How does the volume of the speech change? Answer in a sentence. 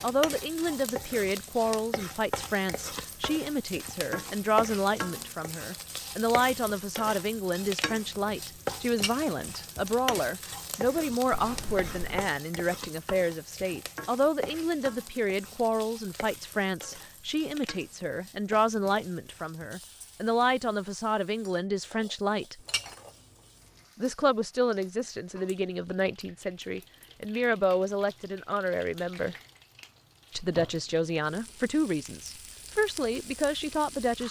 The volume of the speech stays about the same.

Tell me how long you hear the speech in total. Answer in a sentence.
The speech can be heard for 32 seconds in total.